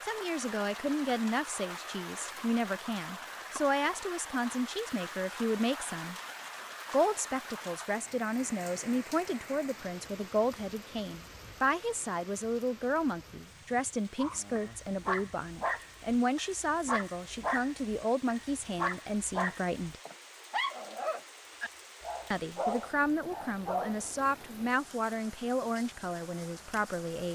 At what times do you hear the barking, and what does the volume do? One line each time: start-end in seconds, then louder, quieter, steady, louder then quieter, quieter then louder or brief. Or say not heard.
14.2-24.1 steady.